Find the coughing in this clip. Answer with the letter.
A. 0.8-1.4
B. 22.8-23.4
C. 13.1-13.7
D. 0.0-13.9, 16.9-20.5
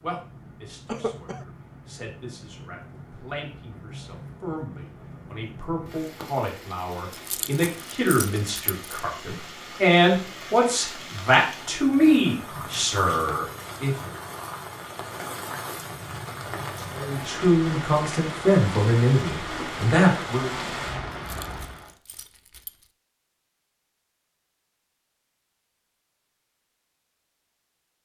A.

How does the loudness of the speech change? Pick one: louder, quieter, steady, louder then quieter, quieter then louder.
louder.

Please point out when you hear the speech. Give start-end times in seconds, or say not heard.
0.0-13.9, 16.9-20.5.